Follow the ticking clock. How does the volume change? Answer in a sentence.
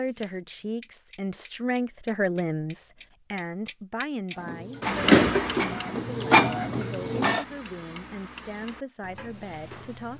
The loudness of the ticking clock goes up, then down.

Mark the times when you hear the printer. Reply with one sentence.
The printer can be heard from 4.3 to 7.5 s.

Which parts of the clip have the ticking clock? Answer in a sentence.
The ticking clock can be heard from 0.0 to 10.1 s.